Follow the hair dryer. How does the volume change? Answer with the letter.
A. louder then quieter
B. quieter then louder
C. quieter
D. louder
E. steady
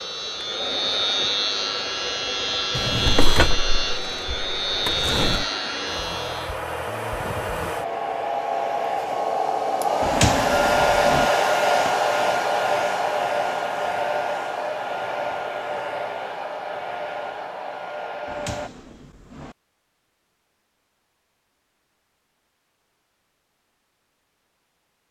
A.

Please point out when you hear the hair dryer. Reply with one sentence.
The hair dryer can be heard from 0.0 to 18.7 s.